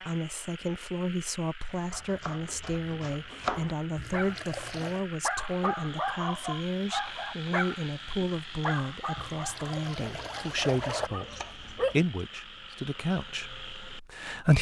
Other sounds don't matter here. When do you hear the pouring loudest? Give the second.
11 s.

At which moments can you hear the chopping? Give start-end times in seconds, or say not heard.
1.9-3.8, 10.1-12.0.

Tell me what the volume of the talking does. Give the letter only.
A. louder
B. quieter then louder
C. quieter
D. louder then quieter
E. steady
E.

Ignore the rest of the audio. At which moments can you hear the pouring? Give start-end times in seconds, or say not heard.
4.0-5.0, 9.2-11.1.